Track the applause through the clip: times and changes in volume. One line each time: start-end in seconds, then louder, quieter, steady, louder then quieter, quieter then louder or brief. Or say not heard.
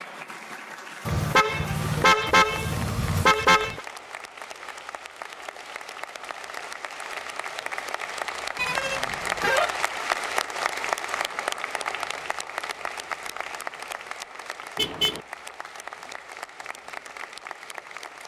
0.0-18.2 louder then quieter.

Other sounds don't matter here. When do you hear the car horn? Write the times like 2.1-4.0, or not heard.
1.1-3.8, 8.6-9.7, 14.8-15.2.